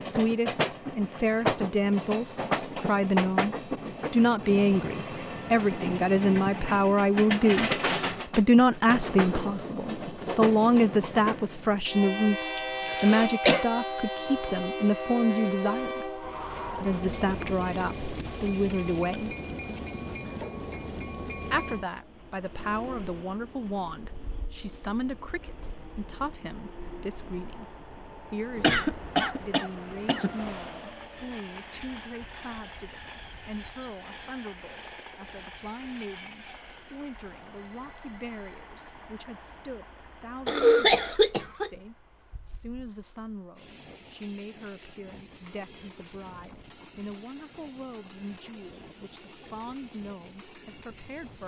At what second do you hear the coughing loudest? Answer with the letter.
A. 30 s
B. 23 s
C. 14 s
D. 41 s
D.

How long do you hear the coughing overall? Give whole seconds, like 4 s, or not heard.
4 s.